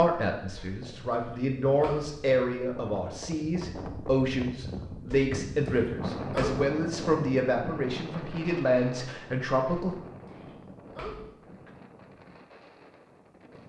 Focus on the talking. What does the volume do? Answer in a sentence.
The volume of the talking stays about the same.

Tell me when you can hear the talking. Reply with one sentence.
The talking can be heard from 0.0 to 9.9 s.